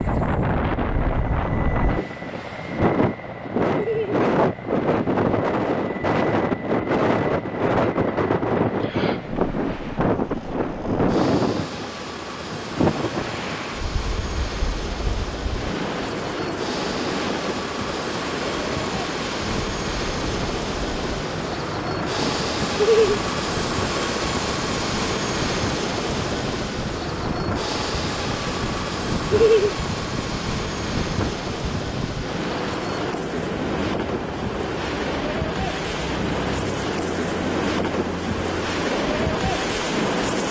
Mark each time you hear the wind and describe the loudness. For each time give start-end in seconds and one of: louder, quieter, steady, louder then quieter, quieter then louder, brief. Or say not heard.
0.0-40.4 quieter then louder.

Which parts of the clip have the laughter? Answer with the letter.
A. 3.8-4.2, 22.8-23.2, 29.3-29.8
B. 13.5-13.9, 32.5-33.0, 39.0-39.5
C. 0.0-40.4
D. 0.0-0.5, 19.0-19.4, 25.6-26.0
A.